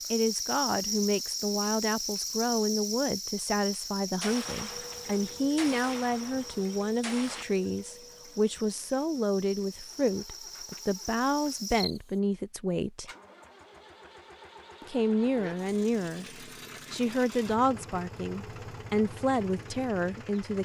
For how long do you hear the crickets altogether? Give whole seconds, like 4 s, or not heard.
12 s.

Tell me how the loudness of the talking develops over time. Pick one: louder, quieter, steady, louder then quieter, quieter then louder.
steady.